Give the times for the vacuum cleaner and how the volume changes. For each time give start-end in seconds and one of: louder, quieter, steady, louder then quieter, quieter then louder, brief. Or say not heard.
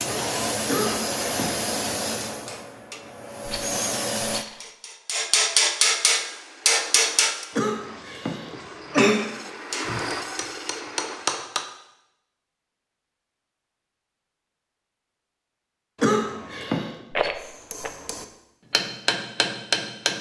0.0-4.5 quieter then louder.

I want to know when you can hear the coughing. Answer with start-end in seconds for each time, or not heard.
0.7-1.6, 7.5-9.2, 16.0-16.9.